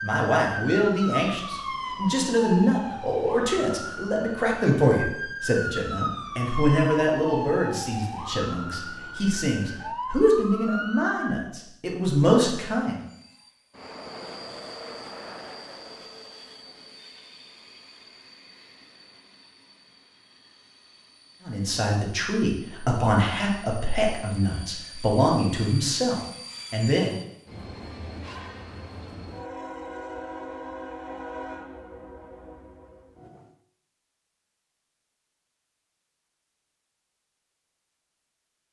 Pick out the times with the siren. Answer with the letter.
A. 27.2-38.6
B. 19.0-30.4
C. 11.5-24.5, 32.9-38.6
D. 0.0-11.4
D.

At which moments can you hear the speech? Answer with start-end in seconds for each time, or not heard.
0.0-13.0, 21.4-27.1.